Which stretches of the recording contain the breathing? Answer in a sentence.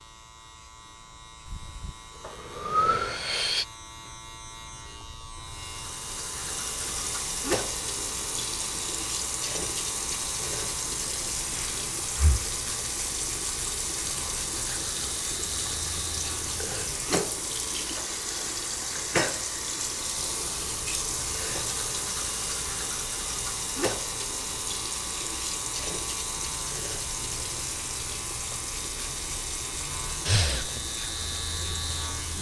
The breathing can be heard from 1.4 to 3.6 s, from 11.5 to 12.6 s and from 30.2 to 30.7 s.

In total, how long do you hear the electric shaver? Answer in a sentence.
The electric shaver can be heard for 32 seconds in total.